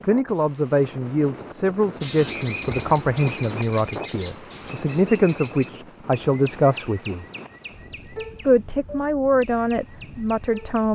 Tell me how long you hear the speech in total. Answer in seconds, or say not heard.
10 s.